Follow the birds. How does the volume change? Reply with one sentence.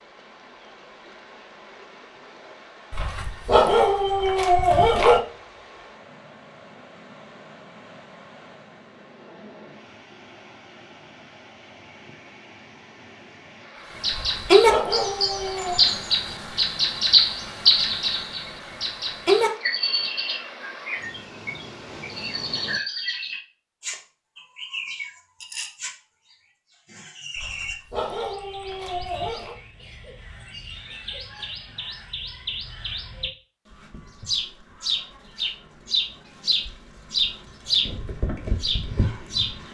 The volume of the birds goes down, then up.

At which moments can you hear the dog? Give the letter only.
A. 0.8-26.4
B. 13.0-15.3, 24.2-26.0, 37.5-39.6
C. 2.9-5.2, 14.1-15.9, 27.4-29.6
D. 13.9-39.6
C.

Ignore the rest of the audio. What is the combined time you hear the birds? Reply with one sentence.
You can hear the birds for 26 seconds altogether.